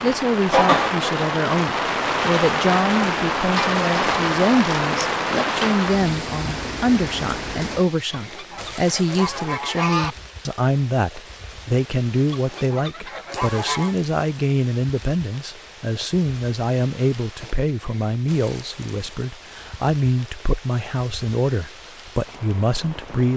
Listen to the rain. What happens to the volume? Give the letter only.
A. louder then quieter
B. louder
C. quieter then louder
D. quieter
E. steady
D.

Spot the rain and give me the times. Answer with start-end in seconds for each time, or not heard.
0.0-23.3.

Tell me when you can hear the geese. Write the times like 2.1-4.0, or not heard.
8.1-10.2, 12.3-13.9.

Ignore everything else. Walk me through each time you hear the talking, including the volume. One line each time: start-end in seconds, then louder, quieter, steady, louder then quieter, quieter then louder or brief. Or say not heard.
0.0-23.3 steady.